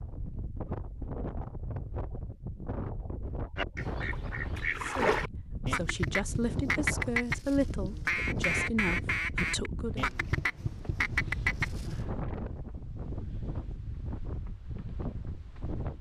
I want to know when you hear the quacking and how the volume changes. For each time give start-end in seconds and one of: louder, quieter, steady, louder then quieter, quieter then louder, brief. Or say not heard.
3.5-12.1 steady.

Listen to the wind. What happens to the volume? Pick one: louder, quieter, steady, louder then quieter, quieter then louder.
steady.